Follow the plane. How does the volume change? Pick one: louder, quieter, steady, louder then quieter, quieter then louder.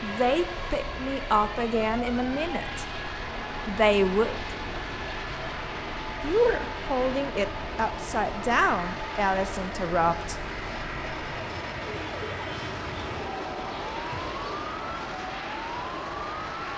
steady.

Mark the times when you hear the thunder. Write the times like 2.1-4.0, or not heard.
not heard.